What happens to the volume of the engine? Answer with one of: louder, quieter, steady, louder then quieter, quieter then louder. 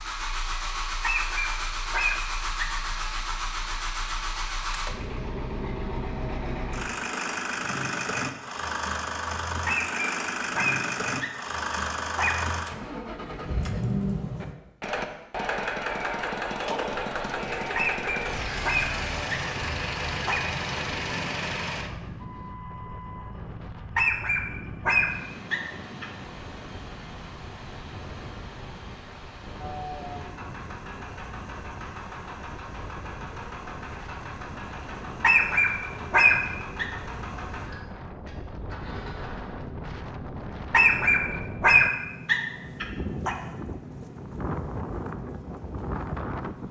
quieter.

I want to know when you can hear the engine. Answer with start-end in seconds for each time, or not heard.
0.0-46.6.